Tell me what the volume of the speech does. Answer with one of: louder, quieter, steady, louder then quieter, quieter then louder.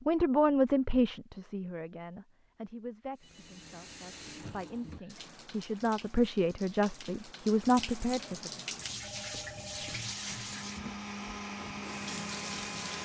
quieter then louder.